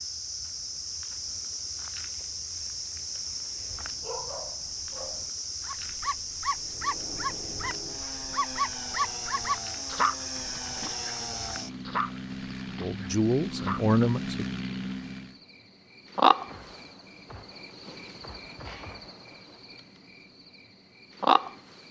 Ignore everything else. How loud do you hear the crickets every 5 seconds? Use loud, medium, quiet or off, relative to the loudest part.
medium, medium, medium, loud, loud.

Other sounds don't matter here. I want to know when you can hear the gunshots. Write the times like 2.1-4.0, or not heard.
16.4-19.8.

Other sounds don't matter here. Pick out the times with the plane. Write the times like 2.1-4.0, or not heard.
6.5-15.4.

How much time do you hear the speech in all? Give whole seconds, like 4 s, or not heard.
2 s.